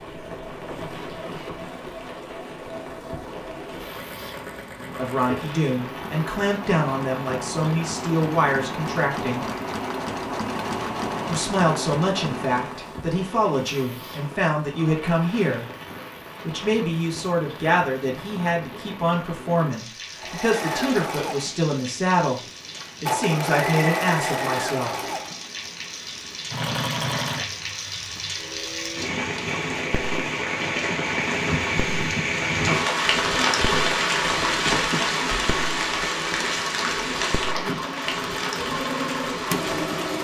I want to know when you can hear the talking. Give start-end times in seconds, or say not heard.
4.8-9.4, 11.2-15.7, 16.4-22.4, 23.0-24.9.